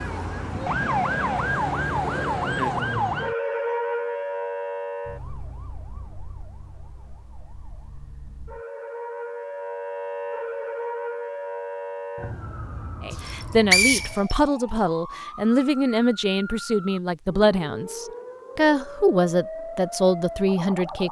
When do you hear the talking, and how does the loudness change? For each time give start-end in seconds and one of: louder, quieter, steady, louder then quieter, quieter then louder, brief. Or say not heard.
13.0-21.0 steady.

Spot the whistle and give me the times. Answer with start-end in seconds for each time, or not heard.
13.2-14.3.